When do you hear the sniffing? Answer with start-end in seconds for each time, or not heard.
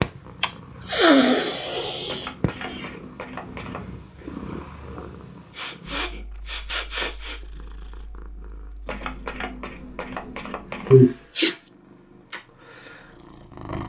0.4-2.9, 5.5-7.4, 10.9-11.6.